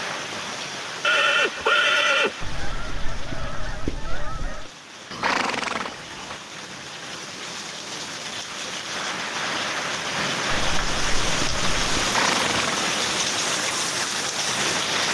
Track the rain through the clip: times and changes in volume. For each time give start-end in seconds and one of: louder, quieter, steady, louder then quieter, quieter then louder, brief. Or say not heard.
0.0-15.0 quieter then louder.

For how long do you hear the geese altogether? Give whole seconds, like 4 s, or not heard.
4 s.